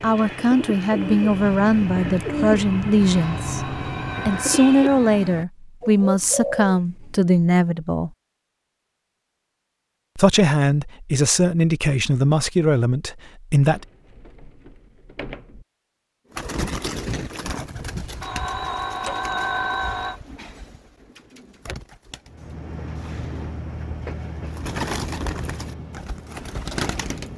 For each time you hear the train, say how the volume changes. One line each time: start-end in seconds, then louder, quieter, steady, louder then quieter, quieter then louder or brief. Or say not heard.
22.2-27.3 quieter.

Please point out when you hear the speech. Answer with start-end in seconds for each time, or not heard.
0.0-8.1, 10.2-13.8.